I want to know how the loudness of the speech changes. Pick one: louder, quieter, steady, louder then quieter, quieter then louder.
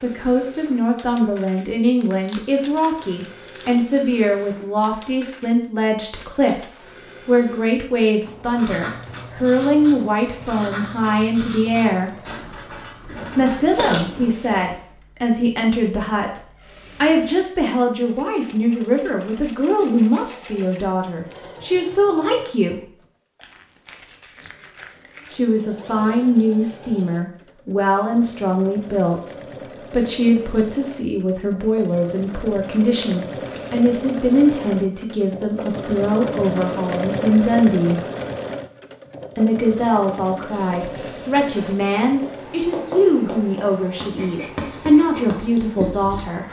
steady.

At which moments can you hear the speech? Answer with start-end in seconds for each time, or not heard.
0.0-12.2, 13.3-22.9, 25.3-38.0, 39.4-46.4.